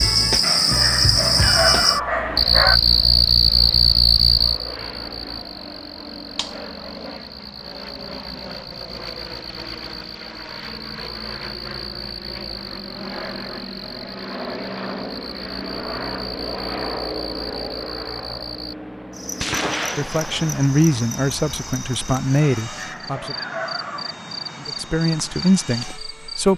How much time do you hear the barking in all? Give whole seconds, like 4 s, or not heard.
4 s.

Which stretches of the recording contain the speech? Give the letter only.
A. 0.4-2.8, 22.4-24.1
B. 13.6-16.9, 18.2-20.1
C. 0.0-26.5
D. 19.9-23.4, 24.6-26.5
D.